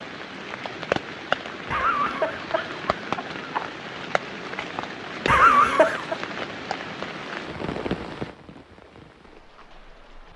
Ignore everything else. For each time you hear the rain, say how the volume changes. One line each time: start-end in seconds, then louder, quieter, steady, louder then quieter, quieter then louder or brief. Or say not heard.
0.0-10.3 quieter.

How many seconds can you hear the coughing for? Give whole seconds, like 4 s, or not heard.
3 s.